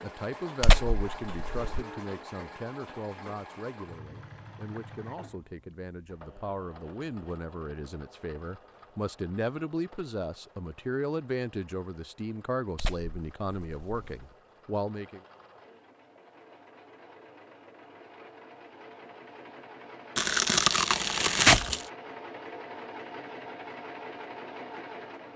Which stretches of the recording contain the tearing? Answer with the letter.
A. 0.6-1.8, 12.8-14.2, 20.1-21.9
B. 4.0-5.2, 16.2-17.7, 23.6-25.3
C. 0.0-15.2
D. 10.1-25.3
A.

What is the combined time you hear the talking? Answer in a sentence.
You can hear the talking for 15 seconds altogether.